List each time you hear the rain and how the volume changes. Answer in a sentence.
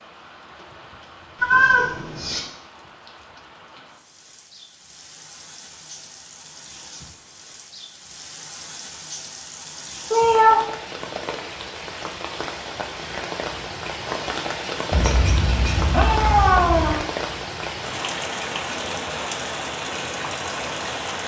You can hear the rain from 0.0 to 21.2 s, getting louder.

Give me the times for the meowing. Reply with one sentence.
You can hear the meowing from 1.4 to 2.4 s, from 10.1 to 10.7 s and from 14.9 to 16.9 s.